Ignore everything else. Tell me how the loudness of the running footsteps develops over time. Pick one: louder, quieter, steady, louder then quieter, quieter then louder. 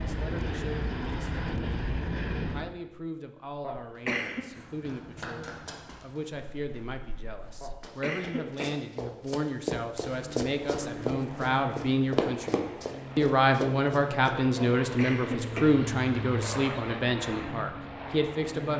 quieter then louder.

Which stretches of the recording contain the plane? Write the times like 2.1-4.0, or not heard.
0.0-2.8, 10.1-18.7.